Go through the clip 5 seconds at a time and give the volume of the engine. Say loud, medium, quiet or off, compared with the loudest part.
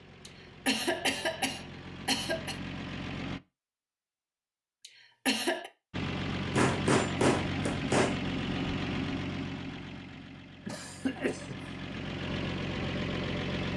medium, loud, loud.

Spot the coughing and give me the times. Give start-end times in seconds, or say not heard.
0.2-2.5, 4.8-5.7, 10.7-11.6.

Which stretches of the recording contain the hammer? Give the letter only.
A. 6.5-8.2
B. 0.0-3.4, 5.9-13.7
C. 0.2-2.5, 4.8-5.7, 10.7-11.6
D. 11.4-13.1
A.